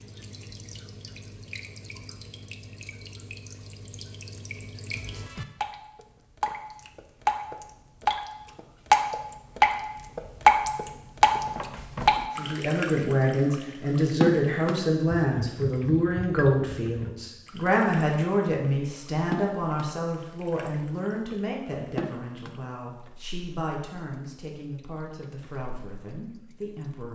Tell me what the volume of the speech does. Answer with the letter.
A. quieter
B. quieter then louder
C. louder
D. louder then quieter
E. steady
A.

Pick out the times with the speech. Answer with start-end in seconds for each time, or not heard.
12.3-27.1.